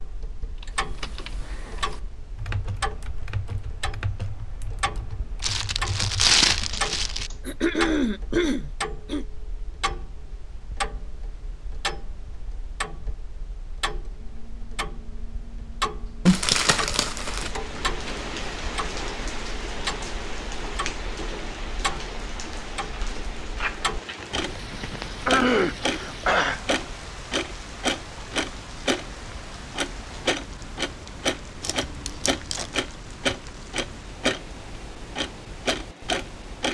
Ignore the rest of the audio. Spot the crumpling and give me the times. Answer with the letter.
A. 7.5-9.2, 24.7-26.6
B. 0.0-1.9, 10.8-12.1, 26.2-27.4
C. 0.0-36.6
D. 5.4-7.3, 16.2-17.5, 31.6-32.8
D.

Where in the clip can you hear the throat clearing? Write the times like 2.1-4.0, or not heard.
7.5-9.2, 24.7-26.6.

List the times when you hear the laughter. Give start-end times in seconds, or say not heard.
not heard.